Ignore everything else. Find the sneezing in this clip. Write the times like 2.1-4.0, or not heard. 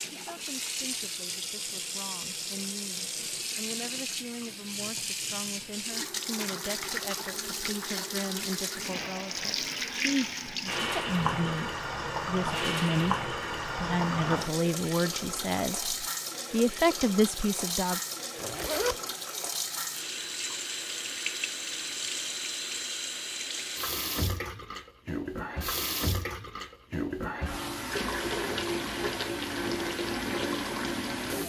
not heard.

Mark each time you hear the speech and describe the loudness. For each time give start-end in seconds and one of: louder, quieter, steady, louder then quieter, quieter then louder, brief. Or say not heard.
0.1-18.0 louder.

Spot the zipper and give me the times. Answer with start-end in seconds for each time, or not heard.
18.4-19.0.